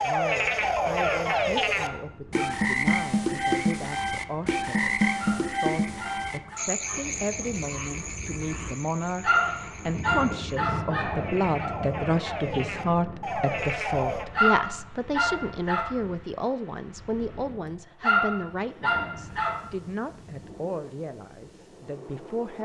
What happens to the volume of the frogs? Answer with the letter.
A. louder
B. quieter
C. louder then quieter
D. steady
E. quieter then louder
E.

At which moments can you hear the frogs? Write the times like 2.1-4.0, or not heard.
0.0-14.2.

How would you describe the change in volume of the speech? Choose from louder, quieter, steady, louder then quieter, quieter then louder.
louder then quieter.